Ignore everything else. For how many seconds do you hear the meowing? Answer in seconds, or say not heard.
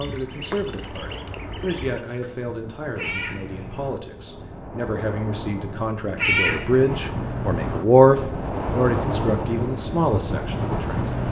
2 s.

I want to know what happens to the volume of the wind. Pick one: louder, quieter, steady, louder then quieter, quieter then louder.
louder.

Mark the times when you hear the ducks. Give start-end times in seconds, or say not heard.
0.0-2.3.